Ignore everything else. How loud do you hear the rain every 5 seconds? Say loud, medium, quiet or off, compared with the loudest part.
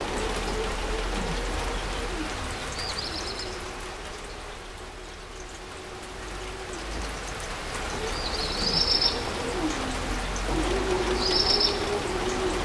medium, loud, loud.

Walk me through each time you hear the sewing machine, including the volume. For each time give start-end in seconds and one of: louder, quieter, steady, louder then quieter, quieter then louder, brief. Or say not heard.
0.0-12.5 quieter then louder.